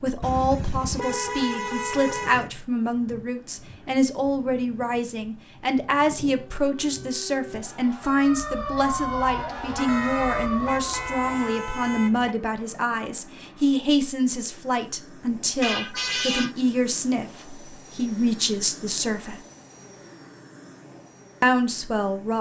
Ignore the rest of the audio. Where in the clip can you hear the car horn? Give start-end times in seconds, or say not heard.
0.2-2.5, 9.6-12.3, 15.6-16.6.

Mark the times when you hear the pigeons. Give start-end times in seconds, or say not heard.
not heard.